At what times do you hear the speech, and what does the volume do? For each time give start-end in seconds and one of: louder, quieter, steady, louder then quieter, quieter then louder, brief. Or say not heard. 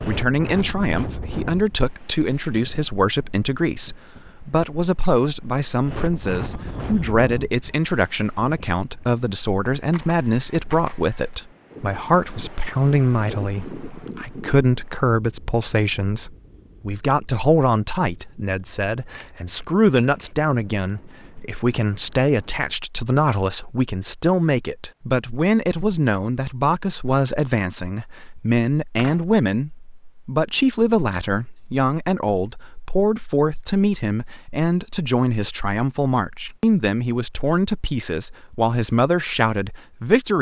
0.1-40.3 steady.